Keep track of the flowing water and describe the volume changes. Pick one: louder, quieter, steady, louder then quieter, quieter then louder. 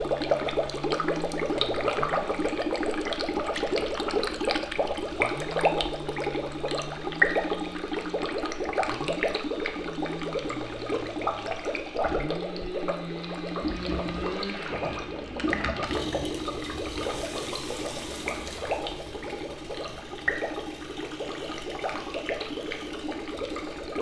quieter.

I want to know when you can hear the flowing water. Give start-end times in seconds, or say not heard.
0.0-23.9.